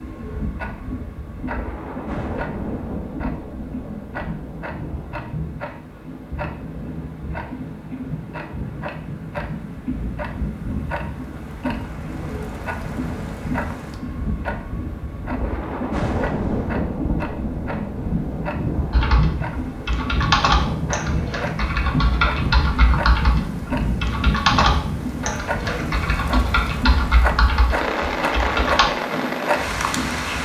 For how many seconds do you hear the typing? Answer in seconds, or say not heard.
10 s.